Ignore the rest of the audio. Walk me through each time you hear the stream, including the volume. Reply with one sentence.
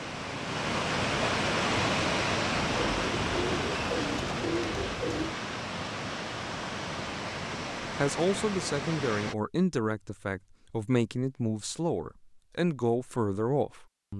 The stream can be heard from 0.0 to 9.3 s, getting quieter.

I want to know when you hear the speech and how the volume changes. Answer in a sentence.
The speech can be heard from 8.0 to 14.1 s, at a steady volume.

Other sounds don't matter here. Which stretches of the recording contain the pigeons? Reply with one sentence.
The pigeons can be heard from 2.6 to 5.3 s.